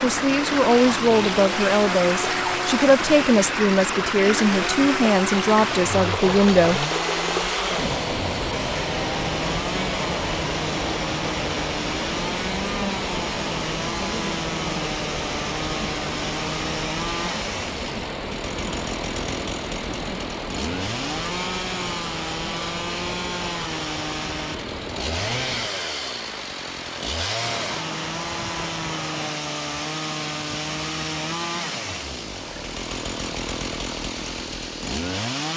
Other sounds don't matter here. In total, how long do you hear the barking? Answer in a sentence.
You can't hear the barking here.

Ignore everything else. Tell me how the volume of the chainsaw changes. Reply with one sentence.
The volume of the chainsaw stays about the same.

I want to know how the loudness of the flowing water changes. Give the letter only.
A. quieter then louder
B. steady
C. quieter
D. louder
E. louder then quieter
C.